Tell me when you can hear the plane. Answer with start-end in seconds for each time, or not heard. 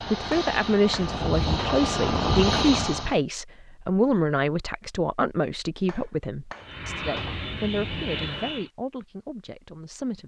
0.0-3.1, 6.6-8.7.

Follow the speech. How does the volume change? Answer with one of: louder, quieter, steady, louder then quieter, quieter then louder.
quieter.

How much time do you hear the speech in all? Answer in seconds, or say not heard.
10 s.